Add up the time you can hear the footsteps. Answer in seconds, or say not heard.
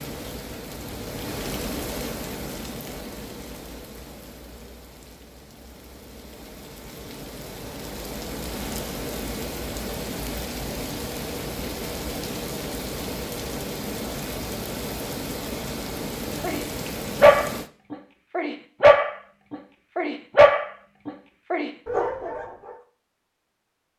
not heard.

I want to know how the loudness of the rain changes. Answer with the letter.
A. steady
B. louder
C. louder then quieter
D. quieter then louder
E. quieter
D.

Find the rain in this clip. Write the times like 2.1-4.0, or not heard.
0.0-17.7.